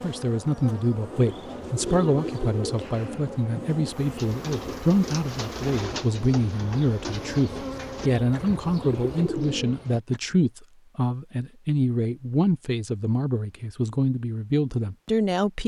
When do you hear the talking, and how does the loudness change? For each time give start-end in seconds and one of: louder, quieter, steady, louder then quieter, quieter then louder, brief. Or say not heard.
0.0-15.6 steady.